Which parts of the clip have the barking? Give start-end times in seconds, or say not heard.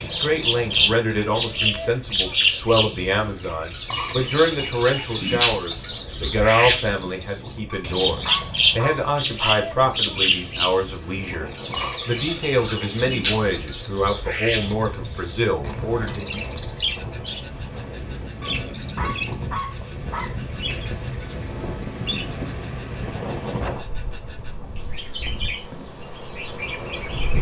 7.7-9.7, 18.4-20.4.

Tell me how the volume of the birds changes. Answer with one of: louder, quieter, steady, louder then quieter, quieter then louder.
quieter.